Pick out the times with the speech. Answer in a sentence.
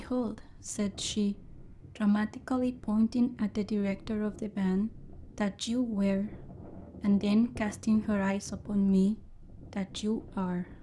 You can hear the speech from 0.0 to 10.7 s.